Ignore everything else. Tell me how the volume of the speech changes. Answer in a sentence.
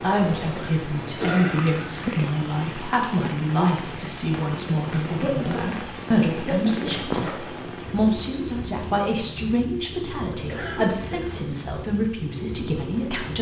The loudness of the speech stays about the same.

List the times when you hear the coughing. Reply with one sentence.
The coughing can be heard from 0.6 to 2.2 s, from 5.0 to 6.9 s and from 10.3 to 11.5 s.